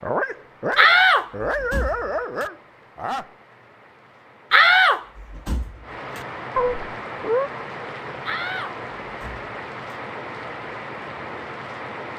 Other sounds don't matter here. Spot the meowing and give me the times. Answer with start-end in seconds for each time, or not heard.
6.5-7.5.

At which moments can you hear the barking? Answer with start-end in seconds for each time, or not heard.
0.0-3.3.